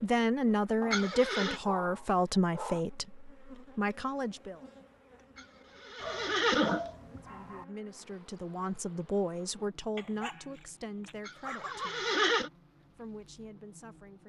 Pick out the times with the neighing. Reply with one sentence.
The neighing can be heard from 0.9 to 1.6 s, from 5.3 to 7.2 s and from 11.2 to 12.5 s.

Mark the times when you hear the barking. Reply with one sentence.
The barking can be heard from 0.8 to 2.8 s, from 6.0 to 7.7 s and from 9.9 to 11.9 s.